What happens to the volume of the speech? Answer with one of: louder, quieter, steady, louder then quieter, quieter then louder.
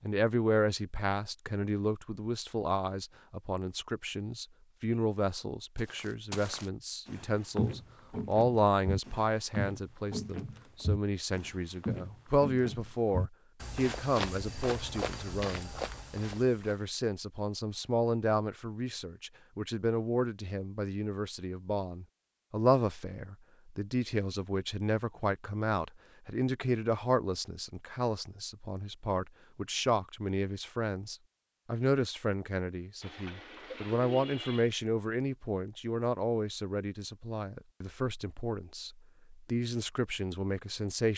steady.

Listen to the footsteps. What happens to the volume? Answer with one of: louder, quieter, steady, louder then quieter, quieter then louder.
steady.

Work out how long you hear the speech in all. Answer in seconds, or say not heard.
41 s.